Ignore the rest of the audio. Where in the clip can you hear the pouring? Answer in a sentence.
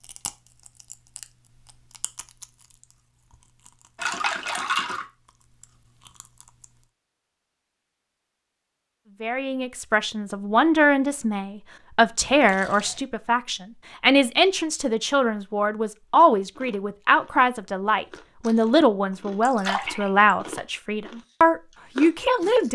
The pouring can be heard from 4.0 to 5.0 s, from 12.2 to 13.0 s and from 19.4 to 20.2 s.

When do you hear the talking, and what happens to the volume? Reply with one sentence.
The talking can be heard from 9.2 to 22.7 s, at a steady volume.